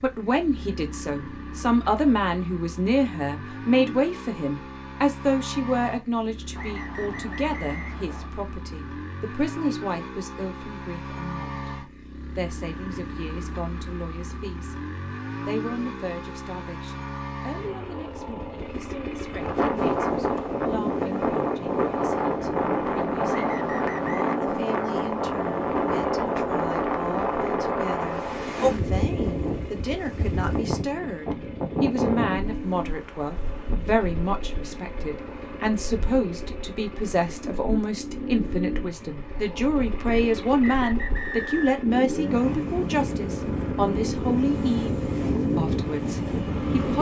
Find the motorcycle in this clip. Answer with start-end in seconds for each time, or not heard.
0.0-46.9.